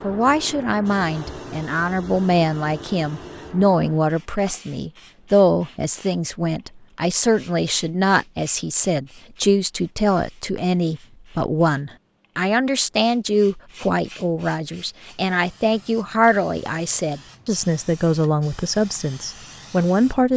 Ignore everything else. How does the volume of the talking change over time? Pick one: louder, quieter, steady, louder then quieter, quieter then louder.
steady.